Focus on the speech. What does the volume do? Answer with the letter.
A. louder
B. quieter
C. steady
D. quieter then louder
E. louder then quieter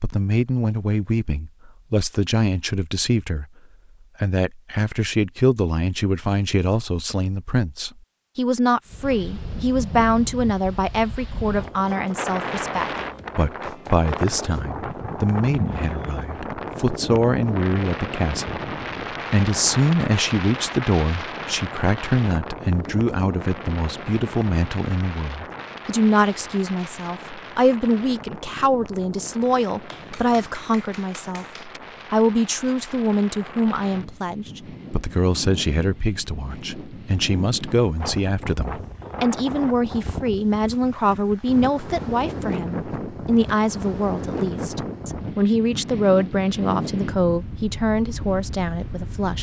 C.